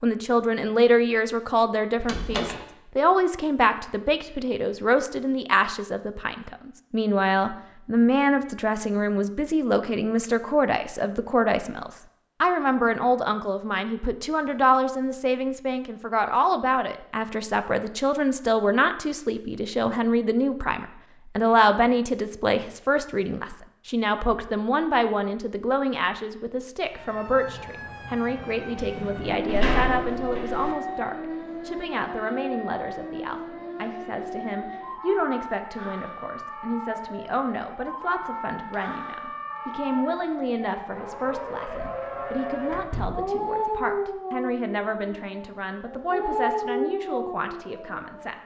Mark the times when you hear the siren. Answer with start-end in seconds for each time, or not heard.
26.9-48.4.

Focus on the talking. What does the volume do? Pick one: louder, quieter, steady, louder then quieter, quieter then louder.
quieter.